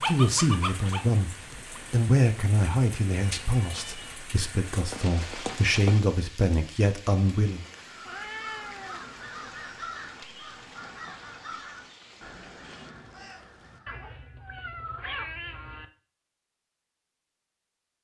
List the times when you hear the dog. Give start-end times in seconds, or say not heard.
0.0-1.8.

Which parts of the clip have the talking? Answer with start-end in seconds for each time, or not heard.
0.1-7.7.